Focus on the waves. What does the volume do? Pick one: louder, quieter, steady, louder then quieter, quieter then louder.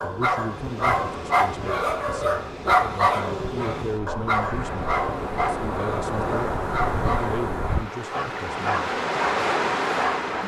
louder.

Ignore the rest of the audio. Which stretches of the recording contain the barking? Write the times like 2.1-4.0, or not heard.
0.0-10.3.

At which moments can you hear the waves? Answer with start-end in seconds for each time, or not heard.
0.0-10.4.